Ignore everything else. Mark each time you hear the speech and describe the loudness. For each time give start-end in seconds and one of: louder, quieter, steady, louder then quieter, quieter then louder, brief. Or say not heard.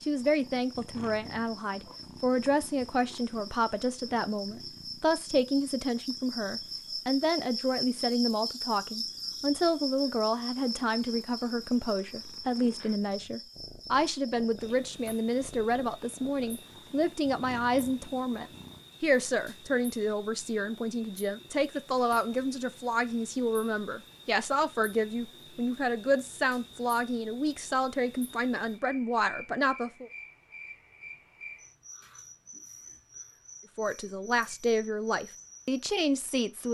0.0-30.1 steady
33.8-36.7 brief.